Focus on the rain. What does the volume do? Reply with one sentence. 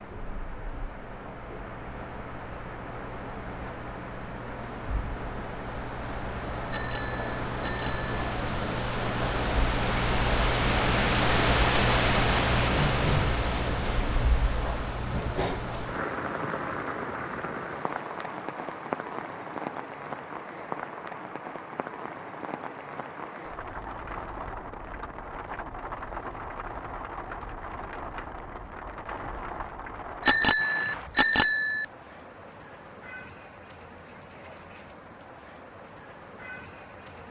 The volume of the rain goes up, then down.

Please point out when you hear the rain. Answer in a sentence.
You can hear the rain from 0.0 to 37.2 s.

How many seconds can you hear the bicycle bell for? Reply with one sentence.
You can hear the bicycle bell for 3 seconds altogether.